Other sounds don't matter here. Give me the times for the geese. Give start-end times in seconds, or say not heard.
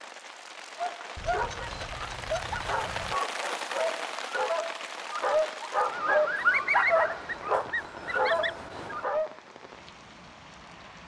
1.1-3.2, 6.3-9.1.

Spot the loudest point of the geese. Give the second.
7 s.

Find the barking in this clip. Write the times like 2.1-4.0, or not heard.
0.8-9.3.